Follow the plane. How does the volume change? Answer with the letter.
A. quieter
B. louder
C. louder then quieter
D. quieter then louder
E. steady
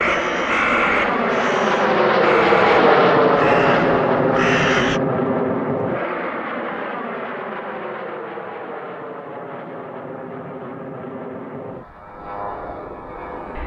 A.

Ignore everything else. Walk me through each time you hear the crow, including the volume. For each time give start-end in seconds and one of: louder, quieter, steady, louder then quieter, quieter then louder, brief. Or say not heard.
0.0-5.0 quieter then louder.